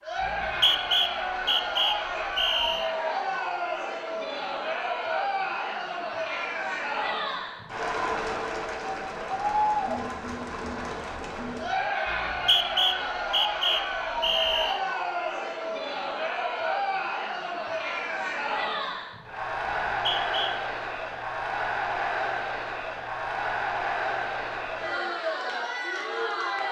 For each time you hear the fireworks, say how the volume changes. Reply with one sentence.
You can't hear the fireworks here.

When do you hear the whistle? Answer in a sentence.
The whistle can be heard from 0.2 to 2.9 s, from 12.1 to 14.8 s and from 19.9 to 20.6 s.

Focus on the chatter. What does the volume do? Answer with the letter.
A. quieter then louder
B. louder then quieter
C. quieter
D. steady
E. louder
D.